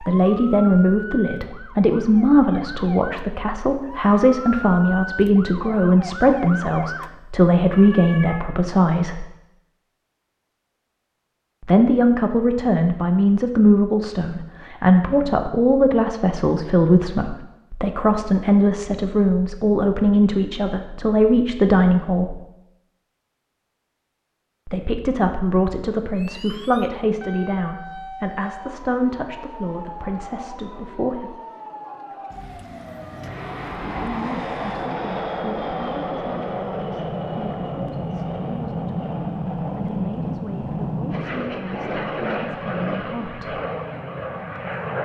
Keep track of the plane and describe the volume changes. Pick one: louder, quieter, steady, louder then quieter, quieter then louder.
steady.